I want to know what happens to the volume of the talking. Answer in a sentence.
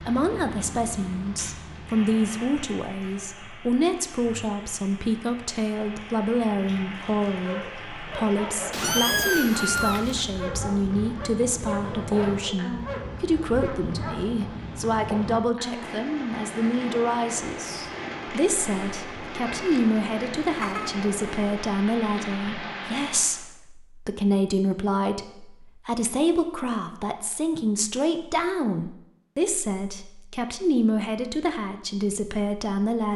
The volume of the talking stays about the same.